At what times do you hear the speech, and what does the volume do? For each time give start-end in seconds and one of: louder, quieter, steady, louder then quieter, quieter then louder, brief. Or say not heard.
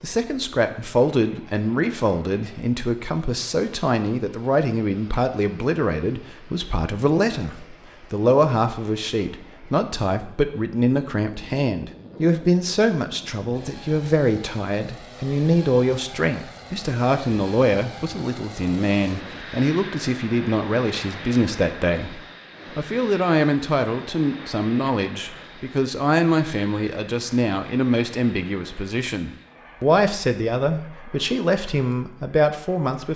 0.0-33.1 steady.